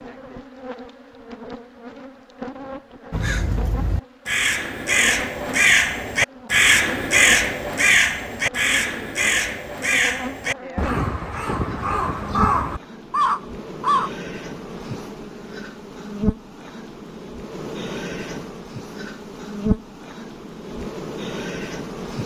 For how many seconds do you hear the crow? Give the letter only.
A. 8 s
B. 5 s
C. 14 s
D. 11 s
D.